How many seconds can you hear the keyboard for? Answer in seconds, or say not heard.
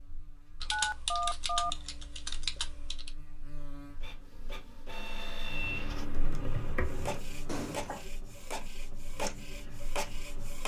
4 s.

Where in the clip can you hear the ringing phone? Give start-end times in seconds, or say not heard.
0.7-1.7, 7.5-8.1.